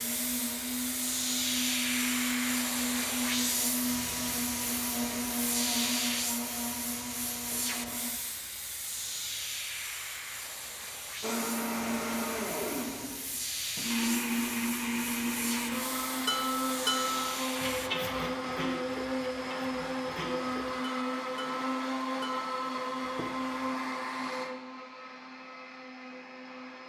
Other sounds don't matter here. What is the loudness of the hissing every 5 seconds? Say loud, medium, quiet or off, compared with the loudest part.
loud, loud, medium, medium, off, off.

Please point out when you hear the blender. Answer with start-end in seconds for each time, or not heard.
0.0-8.2, 11.2-26.8.